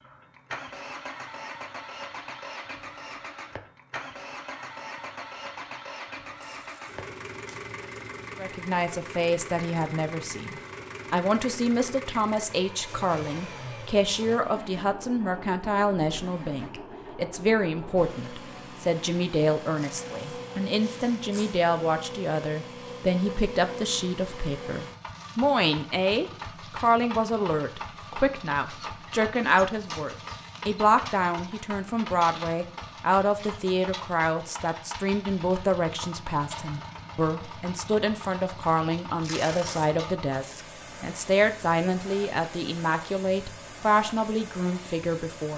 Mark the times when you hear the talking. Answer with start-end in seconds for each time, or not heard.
8.3-45.5.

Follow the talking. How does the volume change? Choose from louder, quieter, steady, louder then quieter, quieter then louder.
steady.